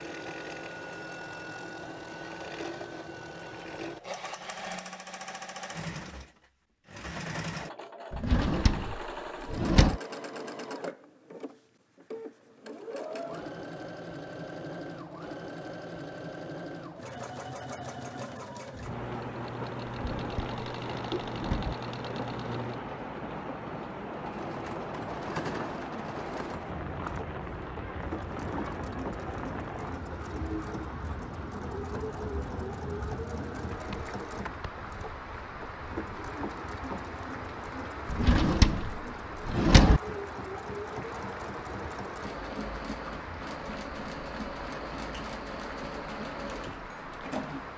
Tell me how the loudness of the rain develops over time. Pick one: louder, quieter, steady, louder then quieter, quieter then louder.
steady.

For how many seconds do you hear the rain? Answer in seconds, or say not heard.
29 s.